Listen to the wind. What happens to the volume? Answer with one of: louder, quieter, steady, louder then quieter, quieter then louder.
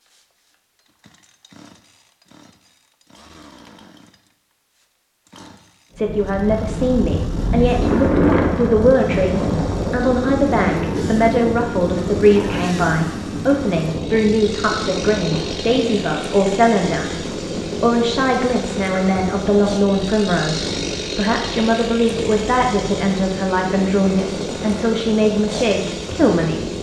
quieter.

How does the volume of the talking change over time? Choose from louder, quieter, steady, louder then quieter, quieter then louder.
steady.